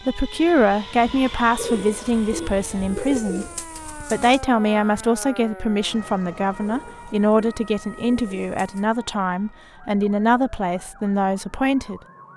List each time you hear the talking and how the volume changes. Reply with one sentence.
The talking can be heard from 0.0 to 12.0 s, at a steady volume.